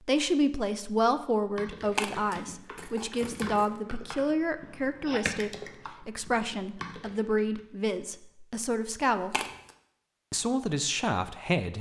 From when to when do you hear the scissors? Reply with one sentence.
You can hear the scissors from 1.8 to 3.6 s and from 9.2 to 9.7 s.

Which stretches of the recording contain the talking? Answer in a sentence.
You can hear the talking from 0.1 to 9.4 s and from 10.3 to 11.7 s.